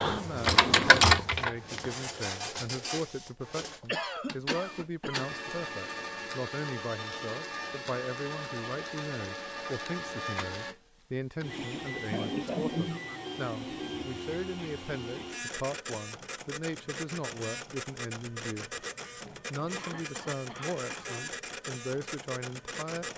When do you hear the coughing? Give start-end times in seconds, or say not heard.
3.9-5.5, 12.1-13.2, 19.8-21.4.